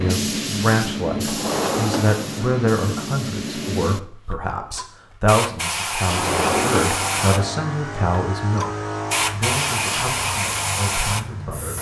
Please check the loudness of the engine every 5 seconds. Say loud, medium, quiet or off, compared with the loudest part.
off, loud, medium.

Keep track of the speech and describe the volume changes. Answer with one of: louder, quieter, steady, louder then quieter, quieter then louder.
quieter.